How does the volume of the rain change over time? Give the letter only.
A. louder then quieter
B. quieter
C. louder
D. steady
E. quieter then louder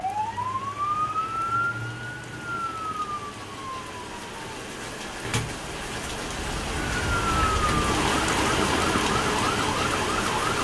C.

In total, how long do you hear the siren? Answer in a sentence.
The siren can be heard for 8 seconds in total.